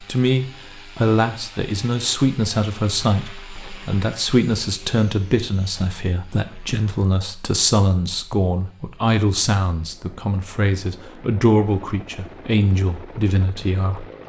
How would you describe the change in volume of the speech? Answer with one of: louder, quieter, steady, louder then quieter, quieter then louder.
steady.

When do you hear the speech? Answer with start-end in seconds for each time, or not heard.
0.0-14.1.